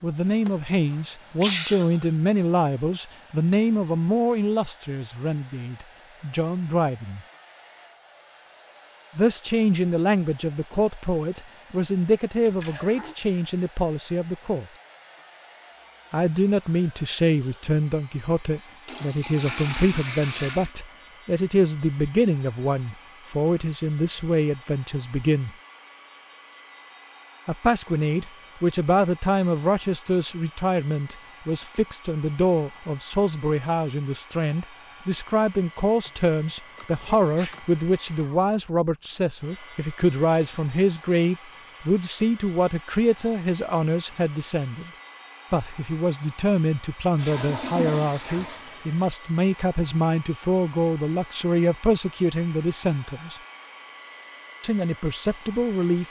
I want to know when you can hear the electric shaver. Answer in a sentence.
The electric shaver can't be heard in this clip.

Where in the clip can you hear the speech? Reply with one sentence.
The speech can be heard from 0.0 to 7.2 s, from 9.2 to 14.7 s, from 16.1 to 25.5 s, from 27.4 to 44.9 s, from 45.5 to 53.4 s and from 54.6 to 56.0 s.